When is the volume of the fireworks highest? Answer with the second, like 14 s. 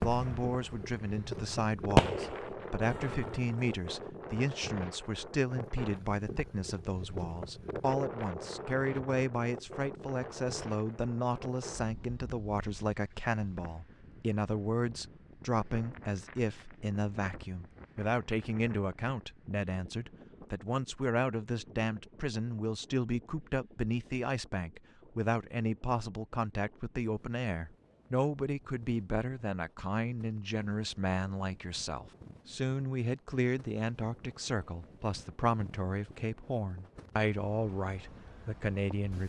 2 s.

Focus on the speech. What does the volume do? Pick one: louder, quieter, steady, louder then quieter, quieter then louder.
steady.